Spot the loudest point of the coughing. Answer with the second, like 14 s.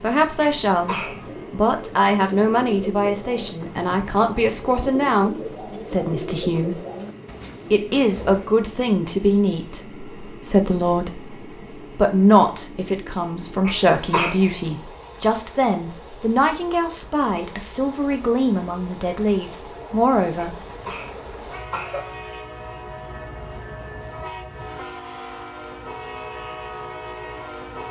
14 s.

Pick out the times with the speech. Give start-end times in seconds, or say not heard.
0.0-6.8, 7.7-20.5.